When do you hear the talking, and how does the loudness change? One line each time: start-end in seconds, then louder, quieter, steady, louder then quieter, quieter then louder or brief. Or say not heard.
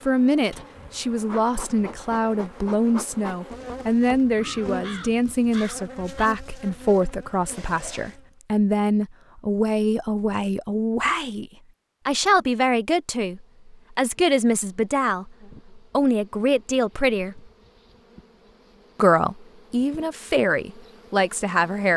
0.1-17.4 steady
18.9-21.9 brief.